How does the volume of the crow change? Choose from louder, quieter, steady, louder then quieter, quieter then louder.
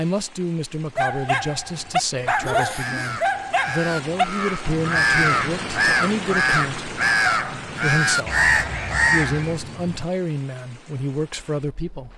louder.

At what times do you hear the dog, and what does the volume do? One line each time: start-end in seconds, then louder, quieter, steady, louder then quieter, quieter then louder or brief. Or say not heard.
0.9-10.1 quieter.